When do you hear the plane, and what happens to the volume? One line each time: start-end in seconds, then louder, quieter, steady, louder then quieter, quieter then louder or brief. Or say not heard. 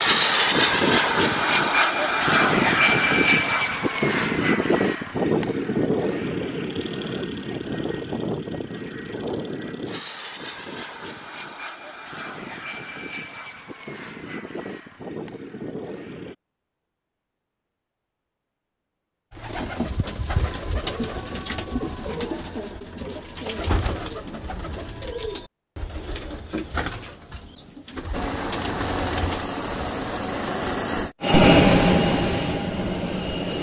0.0-16.4 quieter
28.1-33.5 louder then quieter.